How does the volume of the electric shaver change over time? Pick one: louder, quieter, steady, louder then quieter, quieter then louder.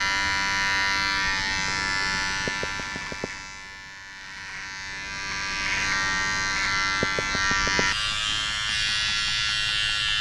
quieter then louder.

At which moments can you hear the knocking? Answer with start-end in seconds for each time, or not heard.
2.5-3.3, 7.0-7.8.